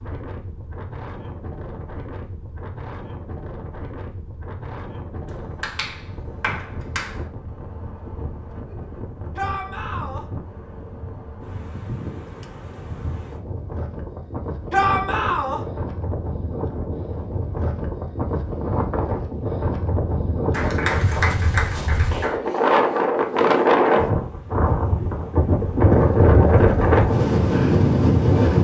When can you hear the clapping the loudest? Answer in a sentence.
The volume of the clapping peaks at 21 seconds.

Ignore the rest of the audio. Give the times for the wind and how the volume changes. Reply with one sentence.
The wind can be heard from 0.0 to 28.5 s, getting louder.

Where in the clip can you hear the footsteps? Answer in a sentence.
You can't hear the footsteps here.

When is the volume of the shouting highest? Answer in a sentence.
The volume of the shouting peaks at 15 seconds.